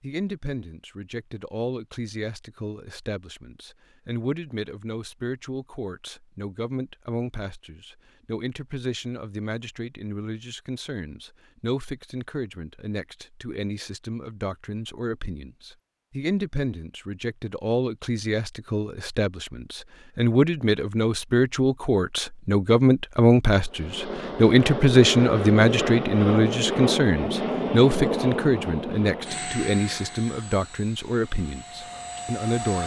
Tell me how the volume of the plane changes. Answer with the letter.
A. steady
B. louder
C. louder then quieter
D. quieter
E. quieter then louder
D.